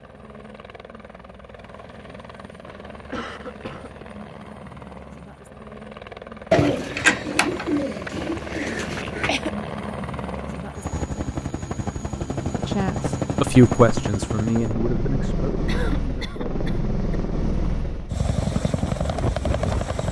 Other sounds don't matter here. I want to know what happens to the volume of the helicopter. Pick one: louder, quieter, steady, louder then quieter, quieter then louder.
louder.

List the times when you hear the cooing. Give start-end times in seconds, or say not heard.
6.5-9.3.